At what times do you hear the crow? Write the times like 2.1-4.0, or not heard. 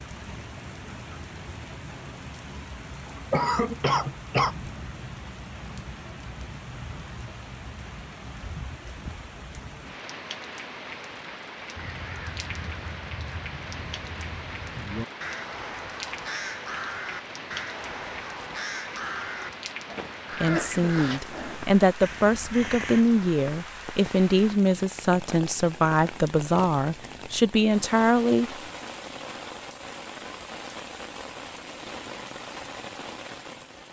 11.8-23.1.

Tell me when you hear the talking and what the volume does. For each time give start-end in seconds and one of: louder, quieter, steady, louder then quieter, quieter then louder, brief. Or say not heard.
20.4-28.6 steady.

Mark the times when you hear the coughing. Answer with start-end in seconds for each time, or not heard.
3.3-4.5, 20.4-21.0.